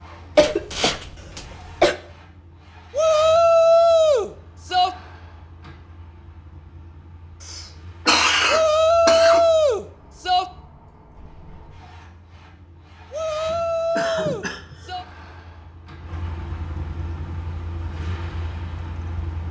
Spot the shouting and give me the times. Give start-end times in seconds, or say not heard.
2.9-4.9, 8.4-10.4, 13.1-15.1.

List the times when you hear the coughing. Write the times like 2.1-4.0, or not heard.
0.3-1.9, 7.5-9.4, 13.4-14.9.